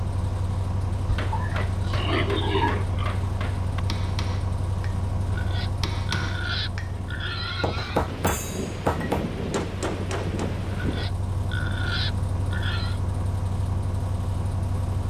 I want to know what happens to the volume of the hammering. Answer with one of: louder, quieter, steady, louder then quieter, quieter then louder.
louder.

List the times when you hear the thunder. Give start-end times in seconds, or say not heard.
7.8-11.1.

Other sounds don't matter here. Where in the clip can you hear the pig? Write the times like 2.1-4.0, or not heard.
1.1-3.2, 5.2-8.1, 10.7-12.9.